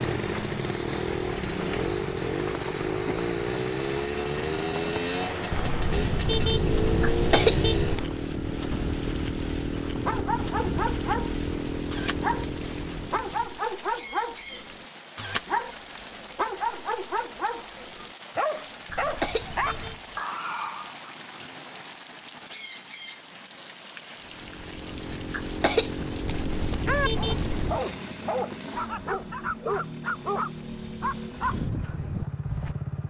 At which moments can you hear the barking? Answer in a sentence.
You can hear the barking from 10.1 to 21.1 s and from 27.1 to 33.0 s.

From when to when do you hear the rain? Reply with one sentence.
The rain can be heard from 0.0 to 27.9 s.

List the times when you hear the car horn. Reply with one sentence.
You can hear the car horn from 5.5 to 8.1 s, from 18.9 to 20.1 s and from 26.2 to 27.8 s.